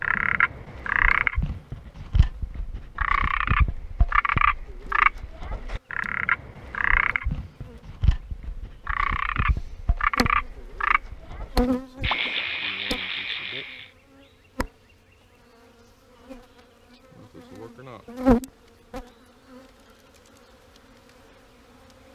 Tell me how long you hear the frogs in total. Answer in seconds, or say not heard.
14 s.